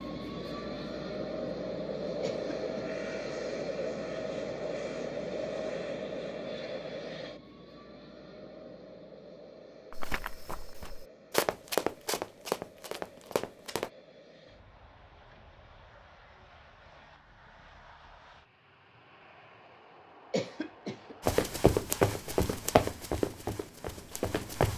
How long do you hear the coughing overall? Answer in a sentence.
You can hear the coughing for 2 seconds altogether.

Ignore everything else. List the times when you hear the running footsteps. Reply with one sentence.
You can hear the running footsteps from 9.9 to 13.9 s and from 21.2 to 24.7 s.